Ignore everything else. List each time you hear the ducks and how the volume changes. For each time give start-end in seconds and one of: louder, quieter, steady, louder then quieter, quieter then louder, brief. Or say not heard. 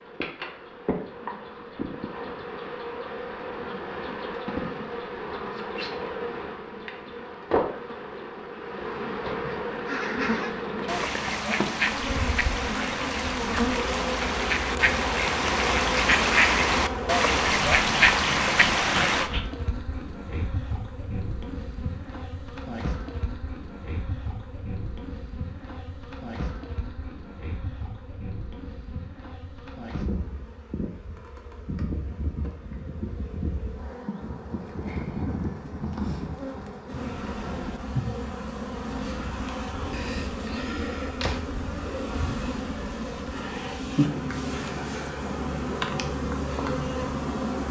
9.8-19.3 louder.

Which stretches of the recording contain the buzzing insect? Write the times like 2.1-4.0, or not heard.
0.0-47.6.